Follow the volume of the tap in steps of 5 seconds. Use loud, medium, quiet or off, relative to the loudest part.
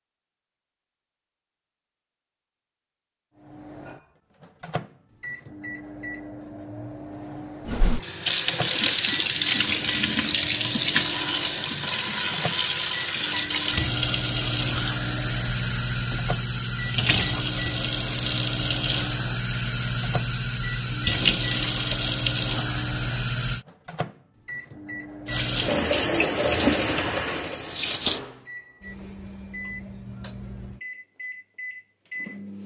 off, loud, loud, loud, loud, loud, off.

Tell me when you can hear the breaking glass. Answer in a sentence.
You can't hear the breaking glass here.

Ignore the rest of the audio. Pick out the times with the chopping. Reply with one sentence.
You can't hear the chopping here.